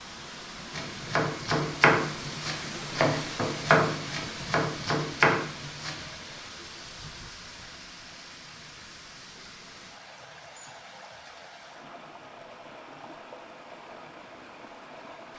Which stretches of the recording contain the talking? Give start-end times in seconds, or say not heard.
not heard.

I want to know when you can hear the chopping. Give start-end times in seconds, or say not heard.
0.7-6.1.